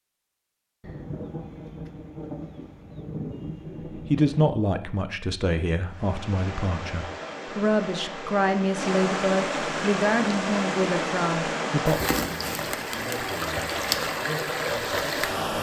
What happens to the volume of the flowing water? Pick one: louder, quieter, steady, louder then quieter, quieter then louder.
louder.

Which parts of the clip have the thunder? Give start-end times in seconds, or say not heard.
0.8-4.5.